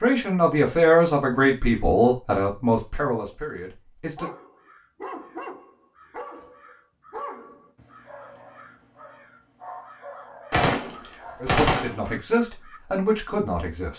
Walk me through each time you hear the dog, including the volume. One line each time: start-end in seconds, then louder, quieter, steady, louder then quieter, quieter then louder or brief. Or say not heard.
4.2-11.6 quieter.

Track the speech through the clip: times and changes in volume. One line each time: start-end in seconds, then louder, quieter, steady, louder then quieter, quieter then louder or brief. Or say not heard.
0.0-4.3 quieter
11.4-13.9 brief.